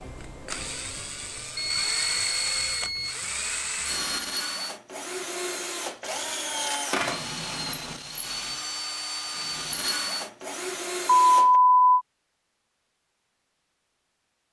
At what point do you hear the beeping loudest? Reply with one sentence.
The loudest moment of the beeping is at 12 seconds.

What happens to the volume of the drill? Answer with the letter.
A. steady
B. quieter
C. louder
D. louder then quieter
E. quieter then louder
A.